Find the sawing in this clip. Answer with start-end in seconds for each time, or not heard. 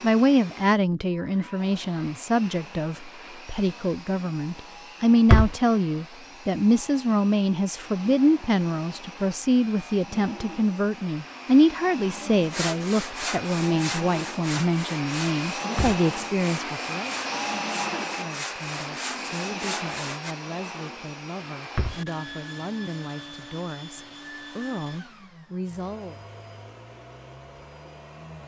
12.4-20.4.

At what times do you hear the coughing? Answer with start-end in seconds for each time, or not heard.
not heard.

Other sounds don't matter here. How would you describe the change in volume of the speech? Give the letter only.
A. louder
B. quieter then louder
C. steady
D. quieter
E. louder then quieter
D.